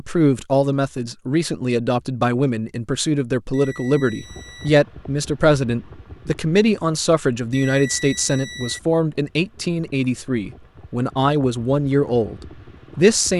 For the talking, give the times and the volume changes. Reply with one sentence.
The talking can be heard from 0.0 to 13.3 s, at a steady volume.